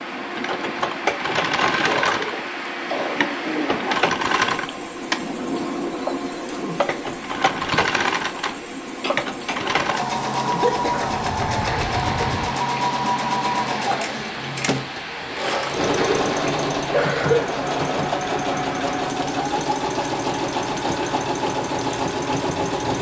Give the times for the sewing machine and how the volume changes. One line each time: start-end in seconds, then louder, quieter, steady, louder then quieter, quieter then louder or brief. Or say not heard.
0.0-22.9 steady.